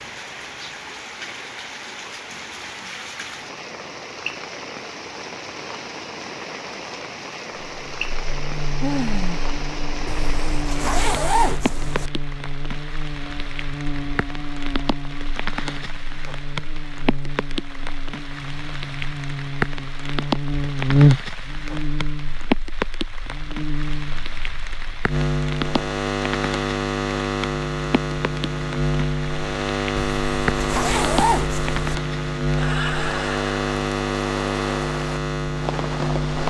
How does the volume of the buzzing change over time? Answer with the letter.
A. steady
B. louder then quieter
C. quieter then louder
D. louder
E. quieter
D.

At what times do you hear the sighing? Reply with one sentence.
You can hear the sighing from 8.8 to 9.5 s.